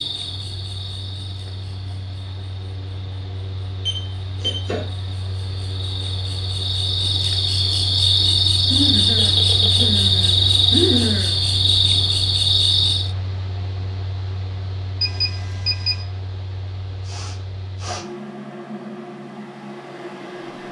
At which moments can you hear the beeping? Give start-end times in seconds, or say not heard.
3.9-4.7, 9.2-10.0, 15.0-16.0.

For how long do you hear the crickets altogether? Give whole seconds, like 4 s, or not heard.
13 s.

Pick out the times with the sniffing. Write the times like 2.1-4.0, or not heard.
4.4-4.8, 8.7-11.3, 17.1-18.1.